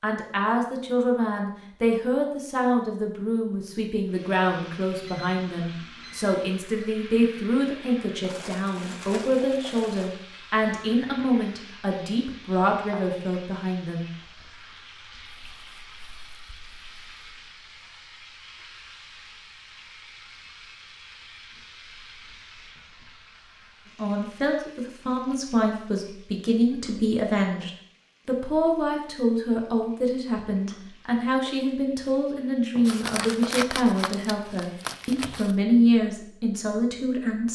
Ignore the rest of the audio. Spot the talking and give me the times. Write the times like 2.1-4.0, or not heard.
0.0-14.1, 23.9-37.5.